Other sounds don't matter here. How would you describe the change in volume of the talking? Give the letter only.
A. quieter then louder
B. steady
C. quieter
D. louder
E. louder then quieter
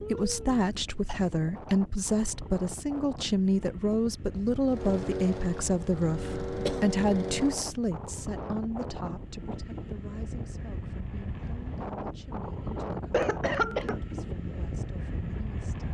C.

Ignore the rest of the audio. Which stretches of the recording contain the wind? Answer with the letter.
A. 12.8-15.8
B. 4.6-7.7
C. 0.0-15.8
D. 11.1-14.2
C.